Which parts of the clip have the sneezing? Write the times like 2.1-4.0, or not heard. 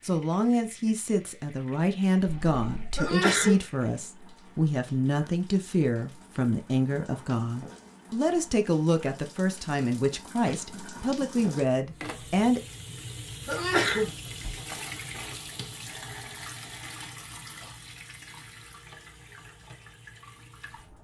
3.0-3.6, 13.4-14.1.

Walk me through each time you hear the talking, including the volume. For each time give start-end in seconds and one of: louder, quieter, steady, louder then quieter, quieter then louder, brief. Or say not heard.
0.0-12.6 steady.